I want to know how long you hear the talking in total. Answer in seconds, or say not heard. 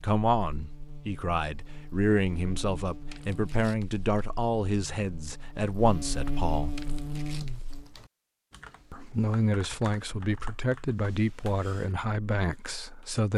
11 s.